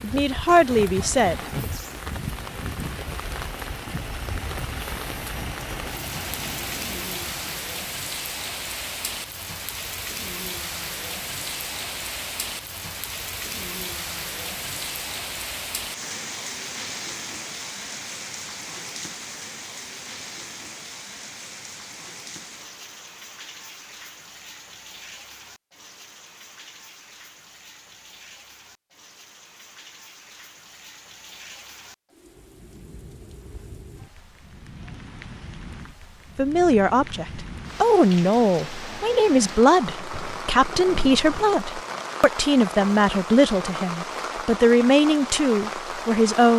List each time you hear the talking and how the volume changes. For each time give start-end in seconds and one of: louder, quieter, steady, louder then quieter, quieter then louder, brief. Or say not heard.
0.0-1.6 brief
36.4-46.5 steady.